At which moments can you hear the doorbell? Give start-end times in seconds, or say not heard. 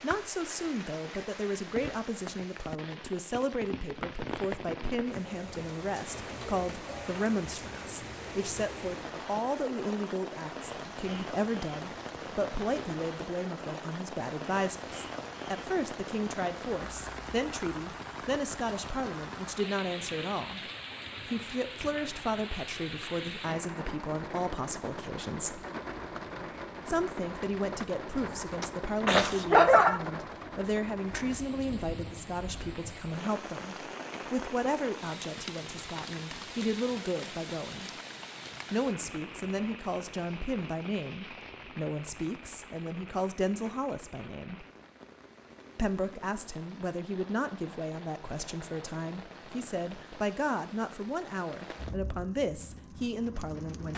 not heard.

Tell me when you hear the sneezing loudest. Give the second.
30 s.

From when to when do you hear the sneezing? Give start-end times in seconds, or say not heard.
28.1-30.0.